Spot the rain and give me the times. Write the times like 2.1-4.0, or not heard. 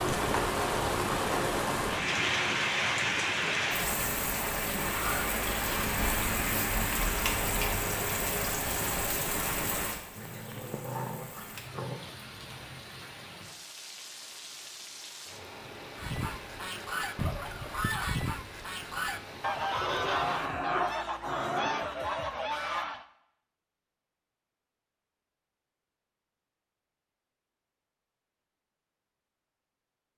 0.0-20.5.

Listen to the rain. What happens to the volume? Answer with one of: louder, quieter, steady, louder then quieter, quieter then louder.
quieter.